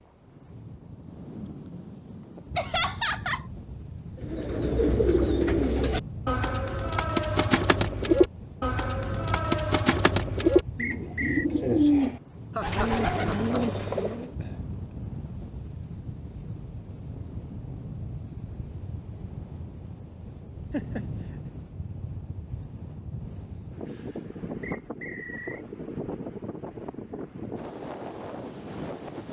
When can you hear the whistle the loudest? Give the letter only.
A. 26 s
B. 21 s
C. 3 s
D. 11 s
D.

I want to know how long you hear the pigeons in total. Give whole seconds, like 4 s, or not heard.
10 s.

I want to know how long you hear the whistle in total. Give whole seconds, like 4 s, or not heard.
2 s.